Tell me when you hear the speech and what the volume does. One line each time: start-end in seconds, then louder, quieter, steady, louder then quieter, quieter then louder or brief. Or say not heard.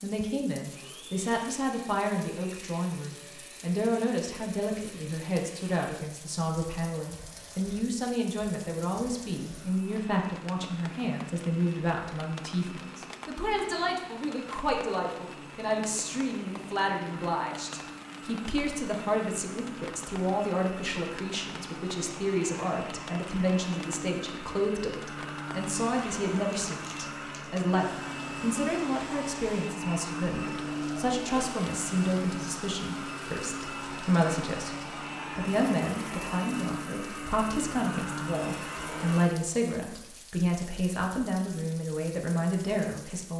0.0-43.3 steady.